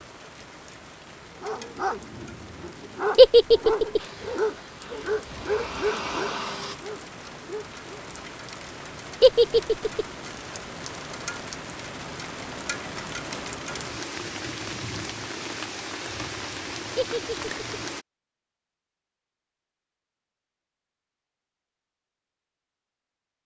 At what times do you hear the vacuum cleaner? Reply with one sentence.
You can hear the vacuum cleaner from 4.0 to 6.8 s.